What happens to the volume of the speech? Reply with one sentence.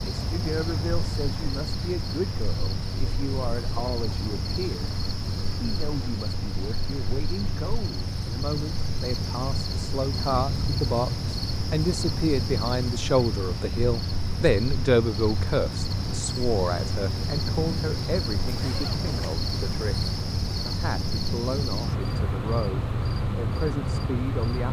The volume of the speech goes up, then down.